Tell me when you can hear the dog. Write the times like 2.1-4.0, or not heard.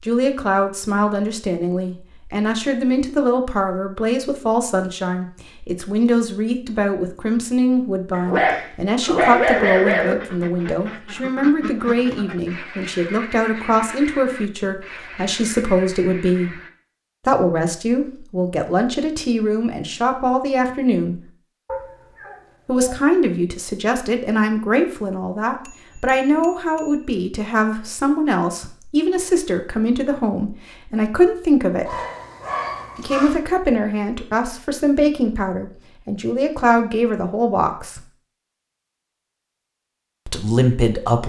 8.1-10.2, 21.6-23.1, 31.9-33.4.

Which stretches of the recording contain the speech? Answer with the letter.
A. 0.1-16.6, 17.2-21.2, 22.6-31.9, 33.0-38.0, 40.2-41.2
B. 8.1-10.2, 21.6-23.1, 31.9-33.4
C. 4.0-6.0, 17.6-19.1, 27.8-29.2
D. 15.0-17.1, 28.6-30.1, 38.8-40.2
A.